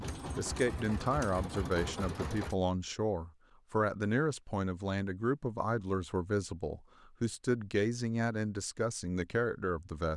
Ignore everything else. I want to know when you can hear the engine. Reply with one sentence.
You can hear the engine from 0.0 to 2.5 s.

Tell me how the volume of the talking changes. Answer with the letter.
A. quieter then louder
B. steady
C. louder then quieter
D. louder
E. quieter
B.